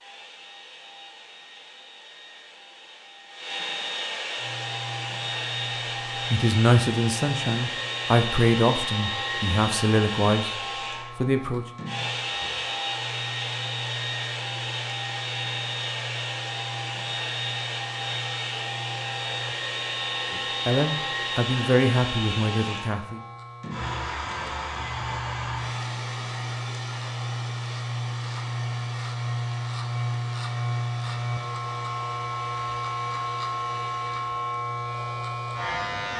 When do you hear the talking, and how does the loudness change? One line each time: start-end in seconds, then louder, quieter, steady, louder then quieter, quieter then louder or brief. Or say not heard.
6.3-11.7 quieter
20.3-23.2 brief.